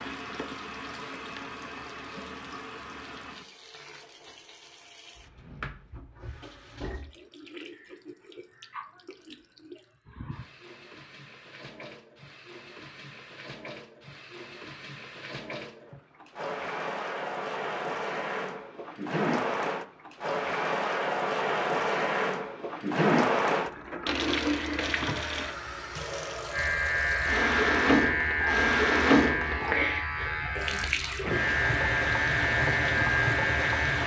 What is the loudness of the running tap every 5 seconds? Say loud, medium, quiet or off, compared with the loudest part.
quiet, quiet, quiet, medium, loud, loud, loud.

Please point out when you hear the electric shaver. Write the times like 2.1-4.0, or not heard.
26.5-34.0.